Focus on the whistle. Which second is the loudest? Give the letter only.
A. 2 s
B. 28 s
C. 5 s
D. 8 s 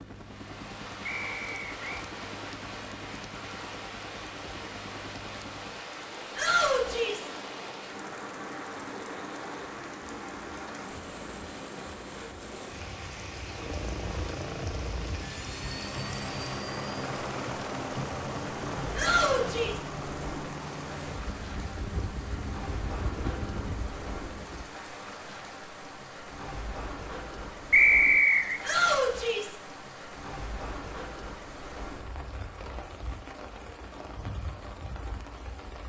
B.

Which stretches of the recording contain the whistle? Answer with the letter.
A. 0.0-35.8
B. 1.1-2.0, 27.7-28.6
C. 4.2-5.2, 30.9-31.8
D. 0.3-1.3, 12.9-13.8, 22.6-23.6
B.